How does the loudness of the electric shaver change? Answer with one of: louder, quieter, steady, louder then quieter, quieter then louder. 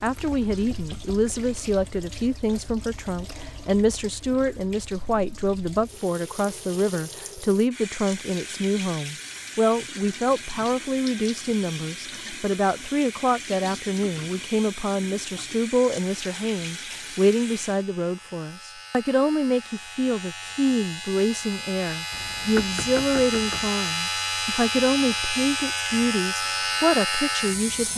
louder.